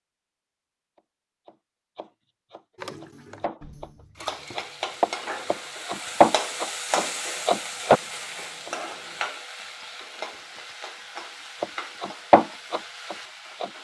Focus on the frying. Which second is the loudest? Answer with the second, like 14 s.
7 s.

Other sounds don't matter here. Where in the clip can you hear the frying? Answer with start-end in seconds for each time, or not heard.
4.2-13.7.